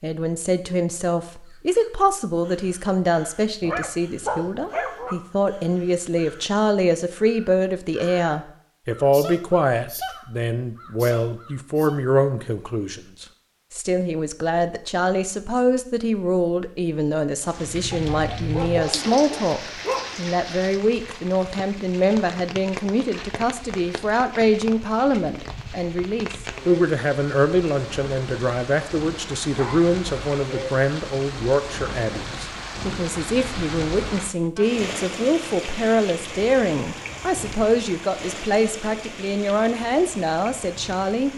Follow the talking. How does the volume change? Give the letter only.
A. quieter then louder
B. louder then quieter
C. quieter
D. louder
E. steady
E.